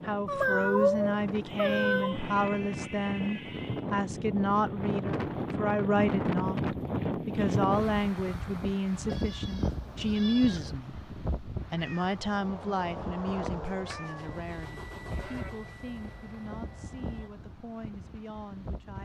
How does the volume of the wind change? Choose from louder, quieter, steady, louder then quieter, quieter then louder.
louder then quieter.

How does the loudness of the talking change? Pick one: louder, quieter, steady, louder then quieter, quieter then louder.
quieter.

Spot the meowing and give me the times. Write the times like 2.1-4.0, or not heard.
0.2-2.2, 11.8-14.4.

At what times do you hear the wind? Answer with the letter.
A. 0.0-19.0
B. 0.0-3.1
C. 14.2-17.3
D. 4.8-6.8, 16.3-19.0
A.